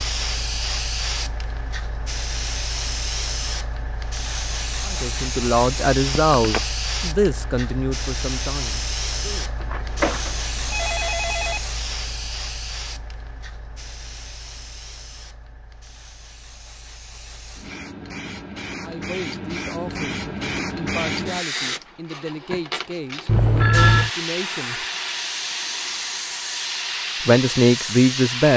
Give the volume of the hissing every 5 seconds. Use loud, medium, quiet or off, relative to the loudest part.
loud, loud, medium, medium, loud, loud.